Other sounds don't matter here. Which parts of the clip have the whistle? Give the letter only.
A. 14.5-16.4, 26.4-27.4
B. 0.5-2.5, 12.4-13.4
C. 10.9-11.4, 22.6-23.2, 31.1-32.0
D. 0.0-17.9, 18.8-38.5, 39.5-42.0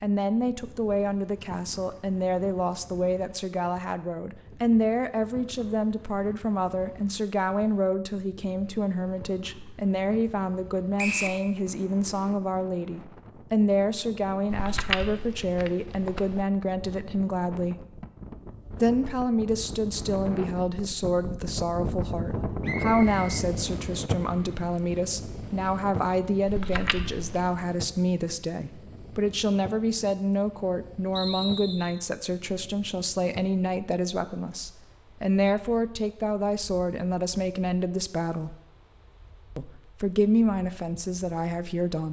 C.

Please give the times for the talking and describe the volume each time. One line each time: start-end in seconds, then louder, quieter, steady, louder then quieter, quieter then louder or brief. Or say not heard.
0.0-17.9 steady
18.8-38.5 steady
39.5-42.0 brief.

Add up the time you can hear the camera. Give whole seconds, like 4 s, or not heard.
3 s.